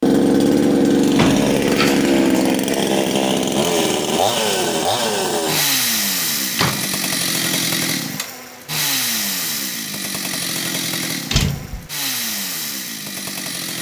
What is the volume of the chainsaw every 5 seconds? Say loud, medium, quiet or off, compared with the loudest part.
loud, medium, medium.